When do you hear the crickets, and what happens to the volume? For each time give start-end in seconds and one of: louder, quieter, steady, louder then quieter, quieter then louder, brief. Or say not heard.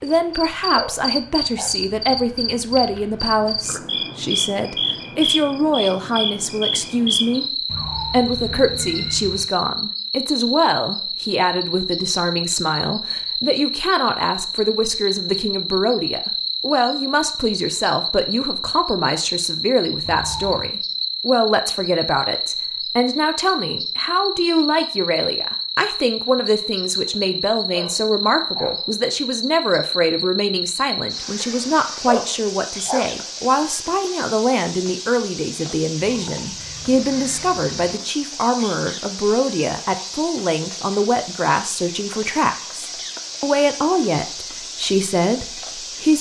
0.0-46.1 quieter.